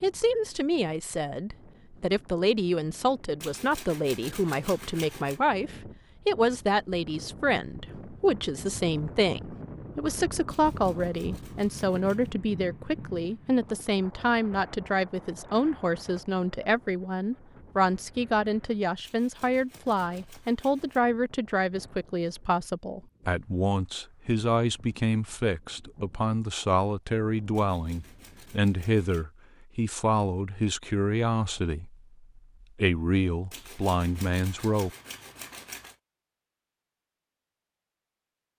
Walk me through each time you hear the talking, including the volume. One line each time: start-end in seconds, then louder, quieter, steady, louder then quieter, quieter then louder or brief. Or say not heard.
0.0-34.9 steady.